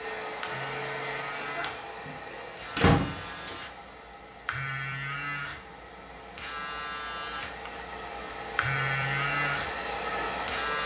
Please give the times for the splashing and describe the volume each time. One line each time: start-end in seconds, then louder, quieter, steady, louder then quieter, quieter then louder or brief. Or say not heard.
not heard.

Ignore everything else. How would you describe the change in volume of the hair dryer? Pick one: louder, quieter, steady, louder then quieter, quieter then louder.
quieter then louder.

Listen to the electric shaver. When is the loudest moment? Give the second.
9 s.